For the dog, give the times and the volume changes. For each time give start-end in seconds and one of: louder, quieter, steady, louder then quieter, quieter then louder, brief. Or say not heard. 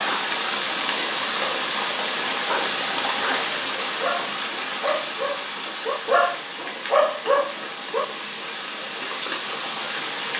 2.5-8.1 louder.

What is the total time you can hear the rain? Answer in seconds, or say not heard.
10 s.